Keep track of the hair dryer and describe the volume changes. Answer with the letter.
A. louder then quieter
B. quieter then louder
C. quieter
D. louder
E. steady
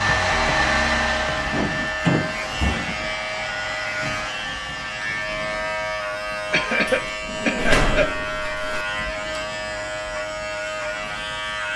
C.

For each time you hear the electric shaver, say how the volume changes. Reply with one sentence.
You can hear the electric shaver from 0.0 to 11.7 s, at a steady volume.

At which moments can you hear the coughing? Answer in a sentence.
The coughing can be heard from 6.5 to 8.1 s.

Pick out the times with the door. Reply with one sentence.
The door can be heard from 1.5 to 3.0 s and from 6.8 to 8.8 s.